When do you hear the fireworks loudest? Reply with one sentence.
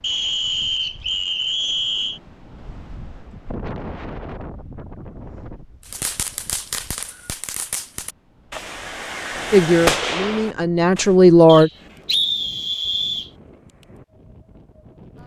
The loudest moment of the fireworks is at 10 seconds.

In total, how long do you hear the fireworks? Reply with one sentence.
You can hear the fireworks for 5 seconds altogether.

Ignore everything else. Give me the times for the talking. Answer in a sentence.
You can hear the talking from 9.5 to 11.7 s.